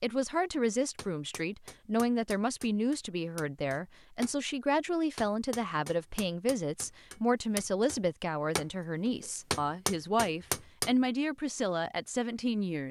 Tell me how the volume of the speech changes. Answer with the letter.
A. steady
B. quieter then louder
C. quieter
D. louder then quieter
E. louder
A.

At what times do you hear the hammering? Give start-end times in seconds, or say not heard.
0.5-10.9.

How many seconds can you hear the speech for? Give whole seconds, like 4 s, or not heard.
13 s.